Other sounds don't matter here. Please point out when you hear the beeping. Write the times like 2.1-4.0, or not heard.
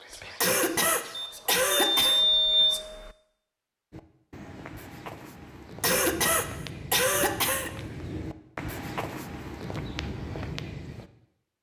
1.1-3.1.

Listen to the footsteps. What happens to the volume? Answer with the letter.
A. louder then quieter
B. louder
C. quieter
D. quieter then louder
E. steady
B.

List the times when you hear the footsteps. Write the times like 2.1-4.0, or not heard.
3.9-11.1.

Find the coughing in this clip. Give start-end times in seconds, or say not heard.
0.4-2.2, 5.8-7.7.